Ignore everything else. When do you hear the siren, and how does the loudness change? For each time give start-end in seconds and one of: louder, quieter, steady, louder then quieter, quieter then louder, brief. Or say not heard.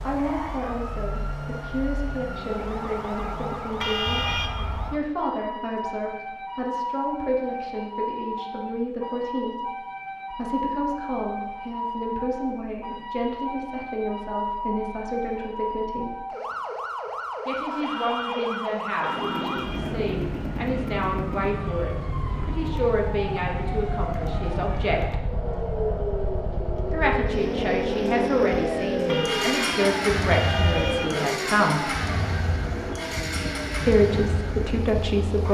0.0-35.4 steady.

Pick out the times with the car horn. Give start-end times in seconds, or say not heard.
3.8-4.5, 17.8-20.0, 29.1-31.4.